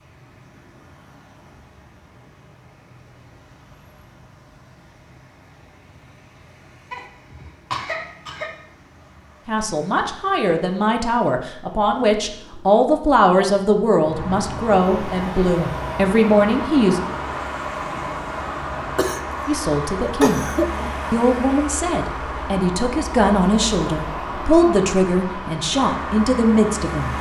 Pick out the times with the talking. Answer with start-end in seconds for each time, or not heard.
9.4-17.0, 19.4-20.4, 21.1-27.1.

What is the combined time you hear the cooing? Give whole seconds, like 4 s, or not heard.
not heard.